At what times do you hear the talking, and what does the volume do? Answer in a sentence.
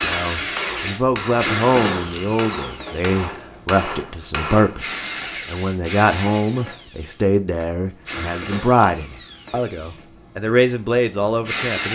The talking can be heard from 0.0 to 11.8 s, at a steady volume.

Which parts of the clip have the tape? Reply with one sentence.
The tape can't be heard in this clip.